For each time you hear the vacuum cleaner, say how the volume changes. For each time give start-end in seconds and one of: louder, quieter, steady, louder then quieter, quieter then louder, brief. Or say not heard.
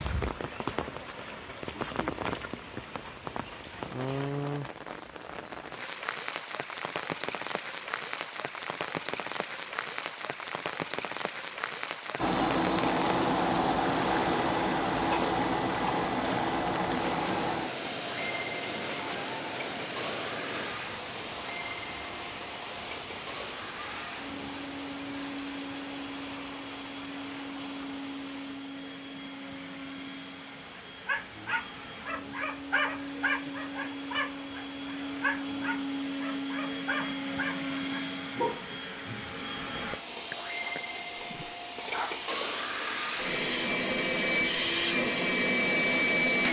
12.2-46.4 quieter then louder.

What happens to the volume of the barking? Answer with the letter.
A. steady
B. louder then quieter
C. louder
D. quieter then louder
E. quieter
E.